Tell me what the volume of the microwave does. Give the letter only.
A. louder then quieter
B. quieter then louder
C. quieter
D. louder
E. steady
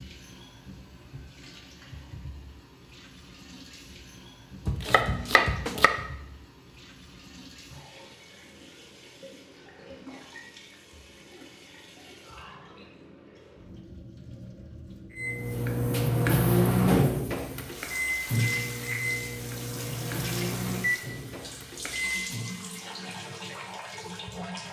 C.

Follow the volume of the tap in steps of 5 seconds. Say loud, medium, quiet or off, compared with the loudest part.
medium, medium, medium, loud, loud.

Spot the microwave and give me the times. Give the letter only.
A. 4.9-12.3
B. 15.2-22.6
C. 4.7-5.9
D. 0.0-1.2
B.